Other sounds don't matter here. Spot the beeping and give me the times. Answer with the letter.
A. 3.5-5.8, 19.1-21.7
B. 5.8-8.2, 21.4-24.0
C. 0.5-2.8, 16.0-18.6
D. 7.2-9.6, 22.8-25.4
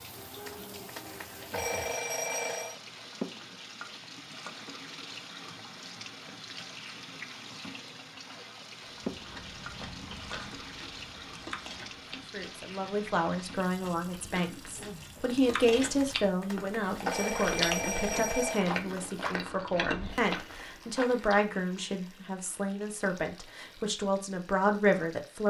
C.